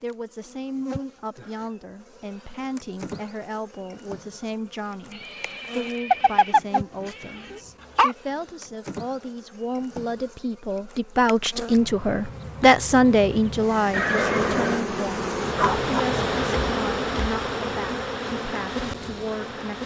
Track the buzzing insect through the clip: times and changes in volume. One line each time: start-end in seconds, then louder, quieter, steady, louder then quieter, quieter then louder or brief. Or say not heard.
0.1-19.8 louder.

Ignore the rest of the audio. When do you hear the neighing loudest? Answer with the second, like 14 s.
14 s.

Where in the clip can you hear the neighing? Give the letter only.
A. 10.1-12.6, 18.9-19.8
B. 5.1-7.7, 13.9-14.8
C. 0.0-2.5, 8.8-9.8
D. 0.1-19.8
B.